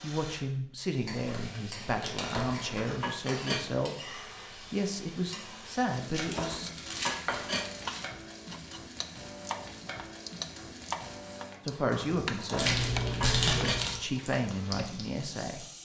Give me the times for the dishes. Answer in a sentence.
You can hear the dishes from 2.3 to 3.7 s, from 6.3 to 7.7 s and from 12.4 to 13.9 s.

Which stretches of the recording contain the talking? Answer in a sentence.
You can hear the talking from 0.0 to 6.7 s and from 11.7 to 15.7 s.